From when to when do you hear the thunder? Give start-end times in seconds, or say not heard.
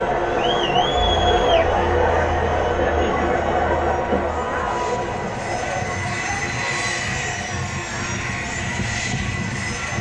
not heard.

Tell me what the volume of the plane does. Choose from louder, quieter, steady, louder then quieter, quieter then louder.
louder.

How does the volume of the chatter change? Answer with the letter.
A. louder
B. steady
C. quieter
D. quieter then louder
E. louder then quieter
C.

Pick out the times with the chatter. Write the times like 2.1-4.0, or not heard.
0.0-9.9.